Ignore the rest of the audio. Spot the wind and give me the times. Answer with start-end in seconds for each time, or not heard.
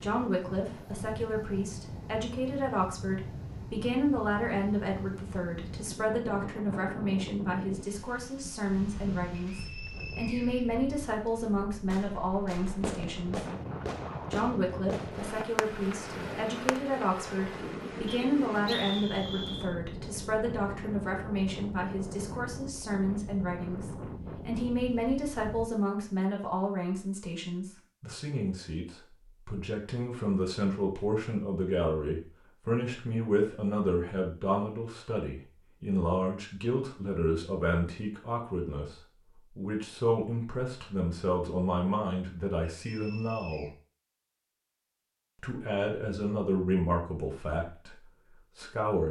0.0-25.7.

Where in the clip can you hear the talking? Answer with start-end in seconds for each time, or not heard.
0.0-13.4, 14.3-39.0, 39.5-43.7, 45.4-48.0, 48.5-49.0.